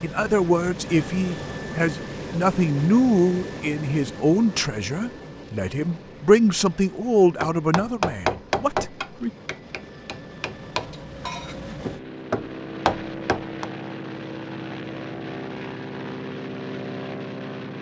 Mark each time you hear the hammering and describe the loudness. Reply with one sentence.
You can hear the hammering from 7.4 to 13.7 s, getting quieter then louder.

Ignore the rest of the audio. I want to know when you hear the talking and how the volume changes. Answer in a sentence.
The talking can be heard from 0.0 to 9.3 s, at a steady volume.